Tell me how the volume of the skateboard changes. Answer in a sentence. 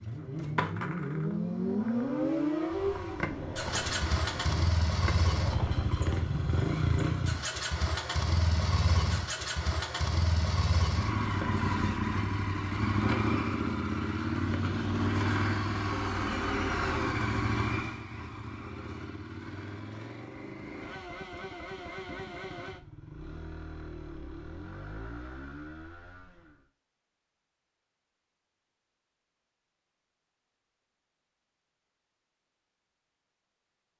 The loudness of the skateboard goes down, then up.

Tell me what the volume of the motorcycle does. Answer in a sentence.
The loudness of the motorcycle goes down.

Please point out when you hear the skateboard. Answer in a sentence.
You can hear the skateboard from 0.1 to 6.6 s.